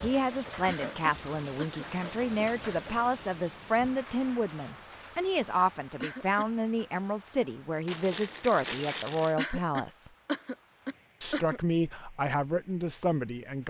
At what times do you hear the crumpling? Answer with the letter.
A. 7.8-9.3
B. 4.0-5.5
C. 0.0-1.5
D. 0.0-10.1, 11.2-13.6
A.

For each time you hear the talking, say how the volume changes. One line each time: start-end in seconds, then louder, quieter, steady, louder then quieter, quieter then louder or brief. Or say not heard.
0.0-10.1 steady
11.2-13.6 brief.